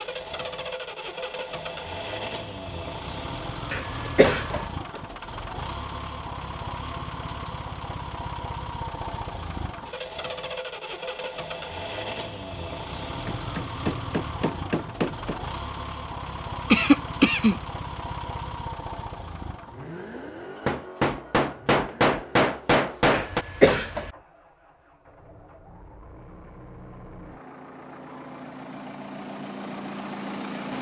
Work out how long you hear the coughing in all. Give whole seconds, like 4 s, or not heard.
3 s.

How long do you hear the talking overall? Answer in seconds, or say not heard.
not heard.